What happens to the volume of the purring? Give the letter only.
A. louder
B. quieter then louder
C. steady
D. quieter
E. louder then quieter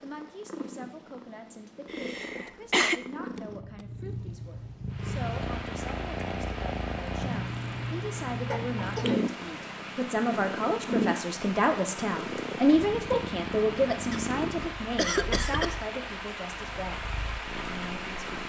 E.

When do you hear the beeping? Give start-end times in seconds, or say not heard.
not heard.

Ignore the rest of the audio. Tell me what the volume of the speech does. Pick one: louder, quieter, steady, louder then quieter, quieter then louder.
louder then quieter.